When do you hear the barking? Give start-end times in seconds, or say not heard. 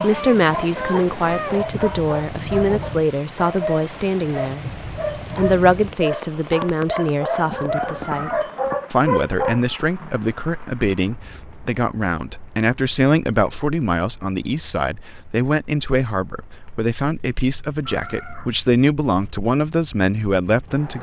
0.0-10.1.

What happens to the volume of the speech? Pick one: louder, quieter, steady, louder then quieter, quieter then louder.
steady.